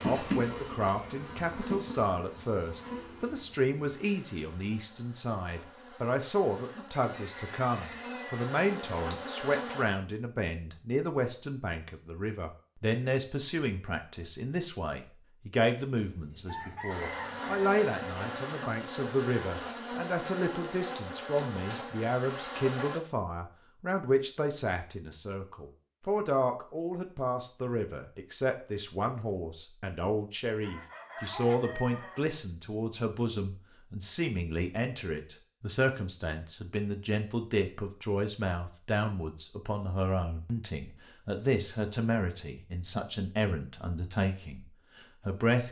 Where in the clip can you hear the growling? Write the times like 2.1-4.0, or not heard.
not heard.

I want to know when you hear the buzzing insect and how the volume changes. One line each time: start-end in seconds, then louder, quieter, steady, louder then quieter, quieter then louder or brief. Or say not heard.
0.0-9.8 quieter then louder
16.9-23.0 steady.